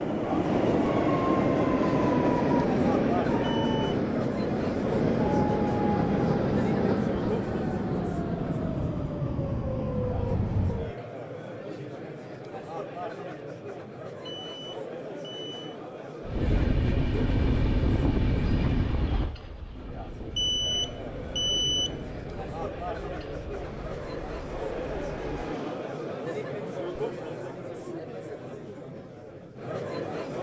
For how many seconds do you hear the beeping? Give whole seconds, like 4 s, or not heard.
4 s.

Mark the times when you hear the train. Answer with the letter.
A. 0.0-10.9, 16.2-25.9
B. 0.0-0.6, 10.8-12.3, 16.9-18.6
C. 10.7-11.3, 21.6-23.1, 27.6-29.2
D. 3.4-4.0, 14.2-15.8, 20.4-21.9
A.